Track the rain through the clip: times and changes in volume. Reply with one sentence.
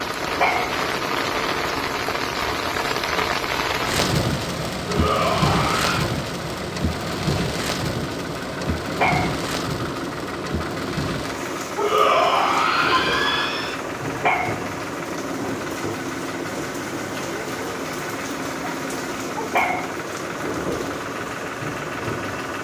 The rain can be heard from 0.0 to 22.5 s, getting quieter.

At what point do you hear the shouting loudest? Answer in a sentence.
The volume of the shouting peaks at 12 seconds.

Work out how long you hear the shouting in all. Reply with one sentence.
The shouting can be heard for 3 seconds in total.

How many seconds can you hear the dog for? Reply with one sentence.
You can hear the dog for 2 seconds altogether.